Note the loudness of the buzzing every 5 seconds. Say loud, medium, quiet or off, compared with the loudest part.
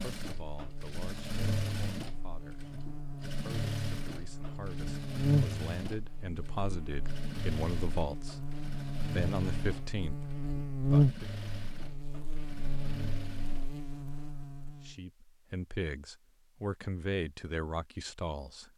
medium, loud, loud, off.